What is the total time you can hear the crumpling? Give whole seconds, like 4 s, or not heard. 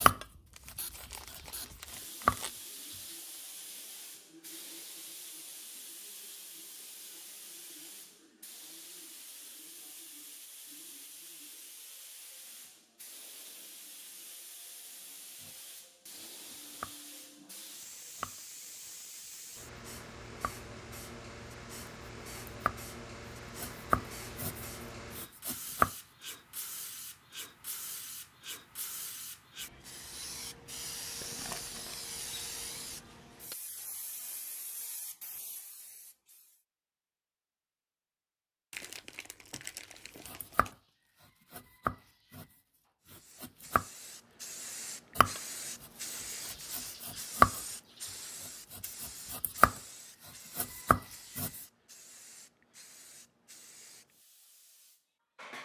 5 s.